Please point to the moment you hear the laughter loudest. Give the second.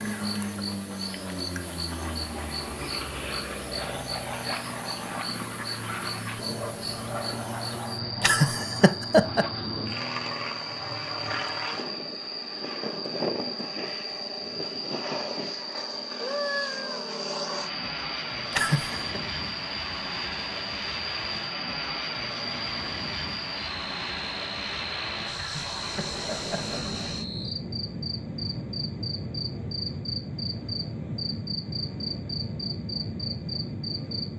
9 s.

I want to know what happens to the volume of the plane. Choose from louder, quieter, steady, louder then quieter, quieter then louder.
steady.